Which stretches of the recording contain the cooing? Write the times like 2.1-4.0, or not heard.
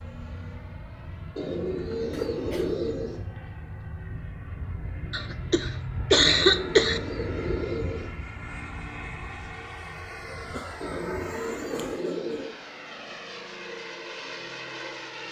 1.4-3.2, 6.2-8.1, 10.8-12.5.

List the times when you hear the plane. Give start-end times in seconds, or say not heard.
0.0-15.2.